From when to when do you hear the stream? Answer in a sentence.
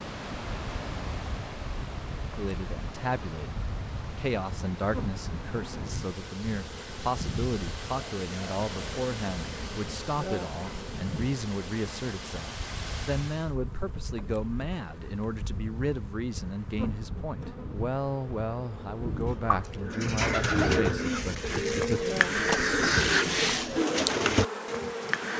The stream can be heard from 0.0 to 13.6 s.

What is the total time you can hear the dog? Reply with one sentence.
The dog can't be heard in this clip.